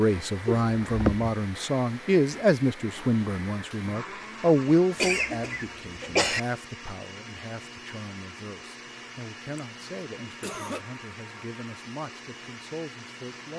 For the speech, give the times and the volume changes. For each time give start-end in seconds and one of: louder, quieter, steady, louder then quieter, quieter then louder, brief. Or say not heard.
0.0-13.5 quieter.